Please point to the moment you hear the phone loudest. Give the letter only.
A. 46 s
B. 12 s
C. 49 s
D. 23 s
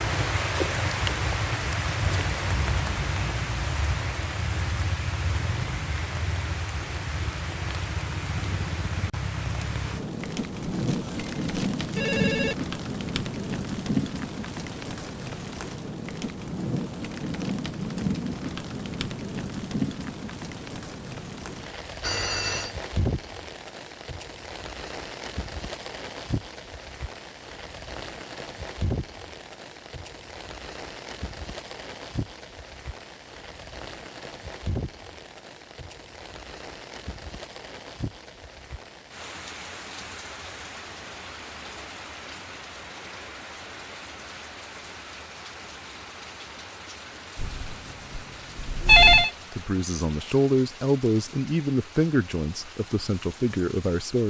C.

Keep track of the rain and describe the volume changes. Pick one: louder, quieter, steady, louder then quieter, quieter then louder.
quieter.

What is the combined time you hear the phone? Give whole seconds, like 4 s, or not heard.
5 s.